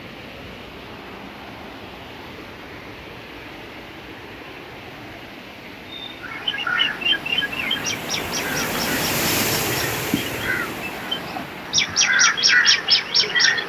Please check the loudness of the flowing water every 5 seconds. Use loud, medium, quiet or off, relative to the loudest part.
medium, loud, medium.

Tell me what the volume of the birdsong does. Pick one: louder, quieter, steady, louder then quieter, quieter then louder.
quieter then louder.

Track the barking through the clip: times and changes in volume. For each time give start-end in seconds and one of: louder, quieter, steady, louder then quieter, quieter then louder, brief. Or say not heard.
not heard.